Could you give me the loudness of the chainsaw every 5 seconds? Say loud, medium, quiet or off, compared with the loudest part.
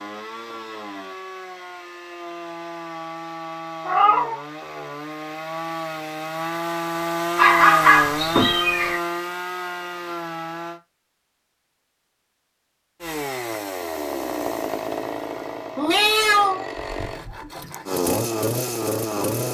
medium, loud, loud, loud.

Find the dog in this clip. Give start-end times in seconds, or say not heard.
7.3-8.9.